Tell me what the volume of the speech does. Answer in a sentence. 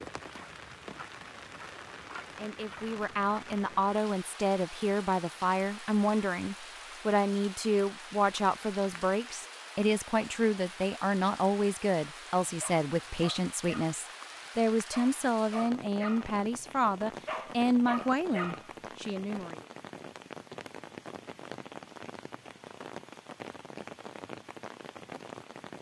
The volume of the speech stays about the same.